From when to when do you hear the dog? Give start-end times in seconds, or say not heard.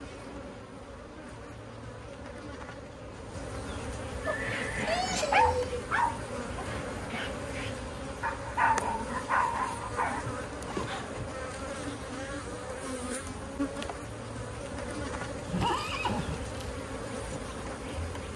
4.0-11.1.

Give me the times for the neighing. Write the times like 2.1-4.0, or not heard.
4.2-5.9, 15.4-16.8.